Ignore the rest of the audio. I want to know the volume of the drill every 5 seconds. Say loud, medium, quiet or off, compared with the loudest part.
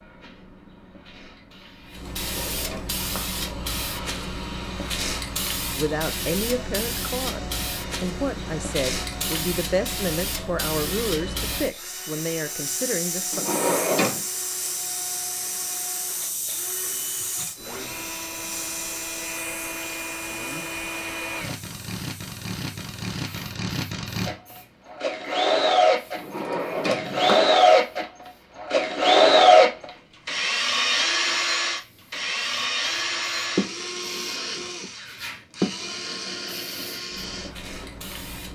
quiet, quiet, quiet, quiet, quiet, loud, medium, quiet.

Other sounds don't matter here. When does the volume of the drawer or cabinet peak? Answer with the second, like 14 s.
14 s.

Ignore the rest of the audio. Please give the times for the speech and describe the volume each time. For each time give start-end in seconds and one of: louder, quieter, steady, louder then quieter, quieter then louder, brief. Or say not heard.
5.7-13.4 steady.